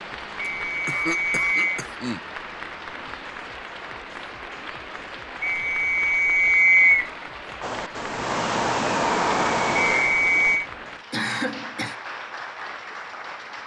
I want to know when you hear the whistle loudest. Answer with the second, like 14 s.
7 s.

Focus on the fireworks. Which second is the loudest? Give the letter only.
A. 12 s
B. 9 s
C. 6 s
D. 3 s
B.